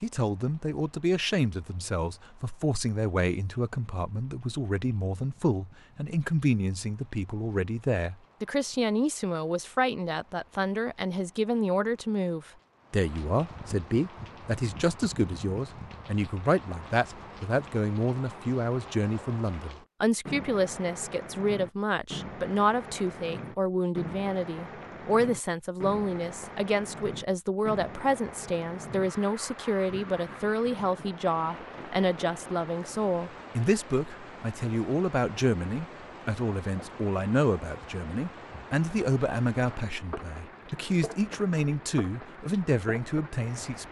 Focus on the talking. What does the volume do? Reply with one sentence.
The volume of the talking stays about the same.